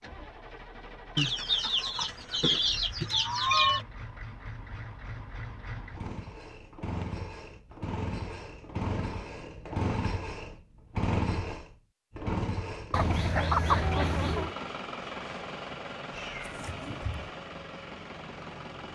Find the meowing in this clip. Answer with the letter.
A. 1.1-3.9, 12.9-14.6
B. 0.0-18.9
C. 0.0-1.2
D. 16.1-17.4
D.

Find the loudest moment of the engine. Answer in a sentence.
The volume of the engine peaks at 11 seconds.